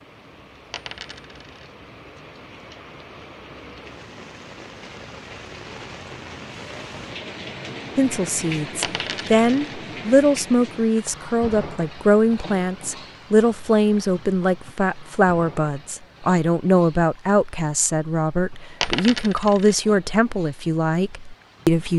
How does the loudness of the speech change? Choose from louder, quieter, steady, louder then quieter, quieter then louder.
steady.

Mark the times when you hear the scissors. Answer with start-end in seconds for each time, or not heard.
not heard.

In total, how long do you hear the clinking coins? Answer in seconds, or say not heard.
3 s.